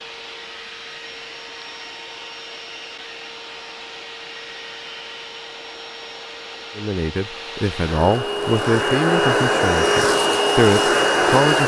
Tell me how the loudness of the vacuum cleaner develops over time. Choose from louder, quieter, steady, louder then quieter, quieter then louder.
louder.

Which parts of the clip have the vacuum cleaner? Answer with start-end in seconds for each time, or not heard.
0.0-11.6.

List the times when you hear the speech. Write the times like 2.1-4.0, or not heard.
6.8-11.6.